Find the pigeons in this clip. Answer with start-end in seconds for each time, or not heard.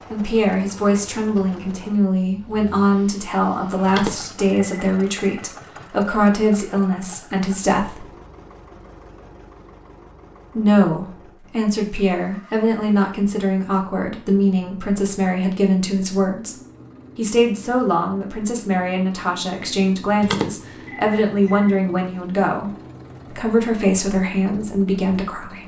not heard.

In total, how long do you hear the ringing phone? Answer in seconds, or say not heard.
3 s.